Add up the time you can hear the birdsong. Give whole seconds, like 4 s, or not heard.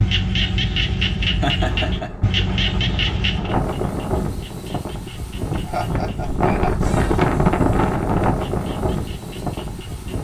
not heard.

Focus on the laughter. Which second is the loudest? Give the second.
2 s.